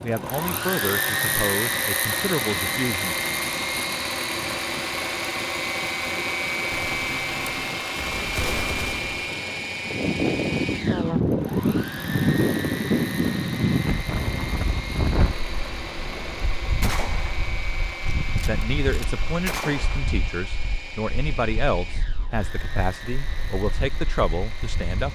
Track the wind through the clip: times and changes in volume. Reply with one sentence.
The wind can be heard from 0.0 to 25.1 s, getting louder then quieter.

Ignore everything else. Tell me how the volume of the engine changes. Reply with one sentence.
The volume of the engine goes down.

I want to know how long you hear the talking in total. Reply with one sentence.
The talking can be heard for 10 seconds in total.